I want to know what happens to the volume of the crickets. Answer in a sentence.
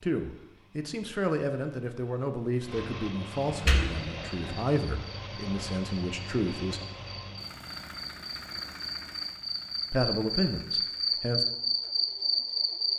The volume of the crickets goes up.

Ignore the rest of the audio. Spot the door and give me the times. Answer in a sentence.
The door can be heard from 3.5 to 4.5 s.